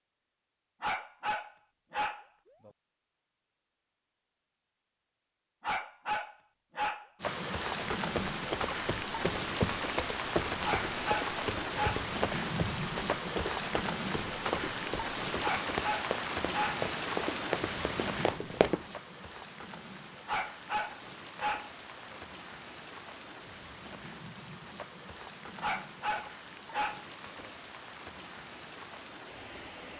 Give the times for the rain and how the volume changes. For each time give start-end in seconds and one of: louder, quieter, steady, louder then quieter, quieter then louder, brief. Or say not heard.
7.2-29.9 quieter.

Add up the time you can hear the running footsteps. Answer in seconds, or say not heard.
11 s.